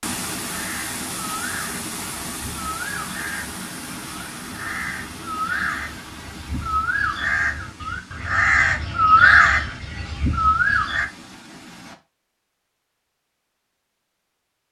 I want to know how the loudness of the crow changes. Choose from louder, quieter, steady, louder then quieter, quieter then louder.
louder.